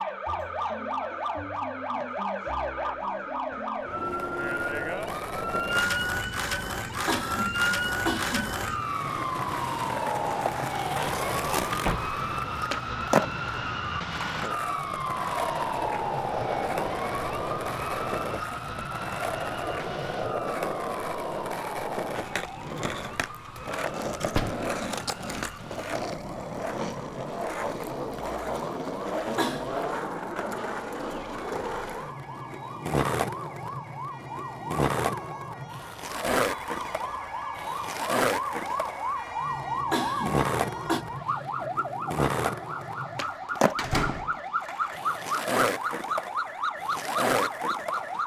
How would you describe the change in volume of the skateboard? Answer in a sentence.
The volume of the skateboard stays about the same.